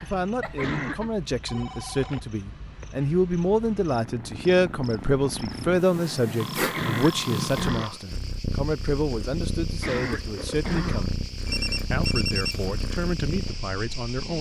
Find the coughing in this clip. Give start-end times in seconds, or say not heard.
0.5-1.1, 6.6-8.1, 9.7-11.2.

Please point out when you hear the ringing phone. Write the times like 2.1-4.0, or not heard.
0.4-2.2, 6.4-7.9, 11.4-12.7.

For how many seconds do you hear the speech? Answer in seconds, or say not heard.
14 s.